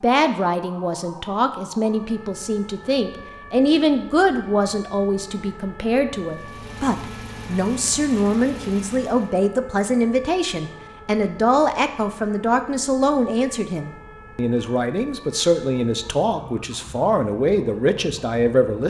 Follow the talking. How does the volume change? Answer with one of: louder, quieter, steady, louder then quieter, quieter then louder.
steady.